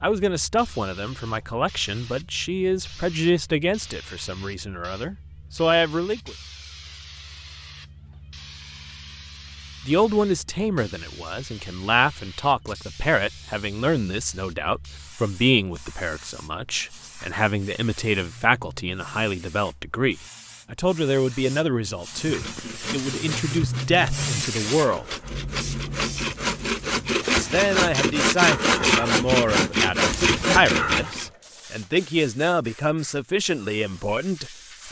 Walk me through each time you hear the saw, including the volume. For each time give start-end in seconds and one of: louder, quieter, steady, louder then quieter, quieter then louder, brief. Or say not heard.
22.1-31.3 louder.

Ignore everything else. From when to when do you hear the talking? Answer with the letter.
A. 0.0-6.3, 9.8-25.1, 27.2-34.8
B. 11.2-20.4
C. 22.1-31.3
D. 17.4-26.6
A.